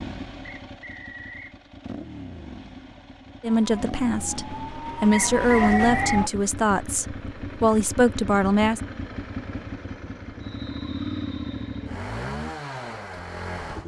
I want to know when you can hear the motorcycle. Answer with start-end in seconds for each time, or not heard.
0.0-13.8.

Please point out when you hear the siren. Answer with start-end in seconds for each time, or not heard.
3.5-6.3.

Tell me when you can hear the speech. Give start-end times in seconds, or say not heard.
3.4-8.8.